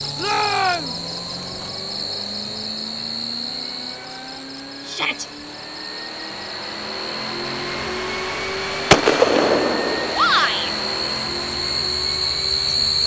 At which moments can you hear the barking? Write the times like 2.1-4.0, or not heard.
not heard.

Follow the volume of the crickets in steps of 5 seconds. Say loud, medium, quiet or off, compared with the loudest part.
medium, medium, loud.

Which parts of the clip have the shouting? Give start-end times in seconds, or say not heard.
0.1-1.0, 4.8-5.2, 10.1-10.7.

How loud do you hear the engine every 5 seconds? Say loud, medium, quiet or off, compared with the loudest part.
medium, loud, loud.